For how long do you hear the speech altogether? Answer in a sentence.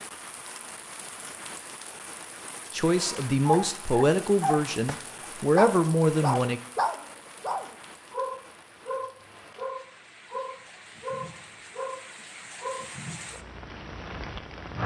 The speech can be heard for 4 seconds in total.